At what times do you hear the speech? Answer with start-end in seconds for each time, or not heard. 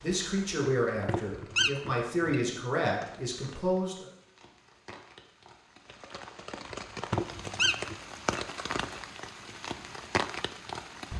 0.0-4.1.